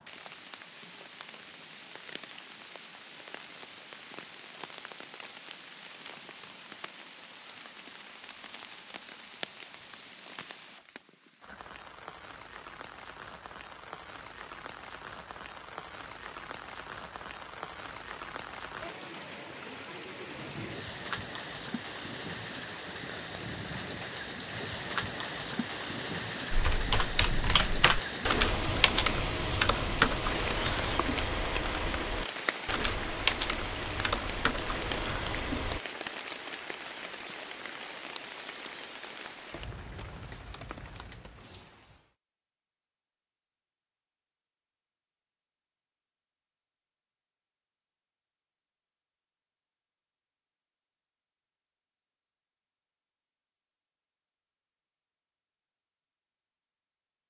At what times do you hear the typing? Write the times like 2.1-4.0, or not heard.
26.5-35.8.